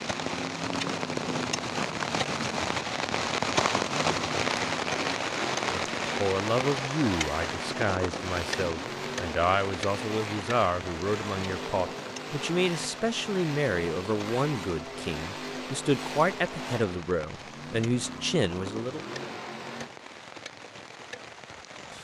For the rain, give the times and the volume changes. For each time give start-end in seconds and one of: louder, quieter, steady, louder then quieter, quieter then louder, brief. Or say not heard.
0.0-21.9 quieter.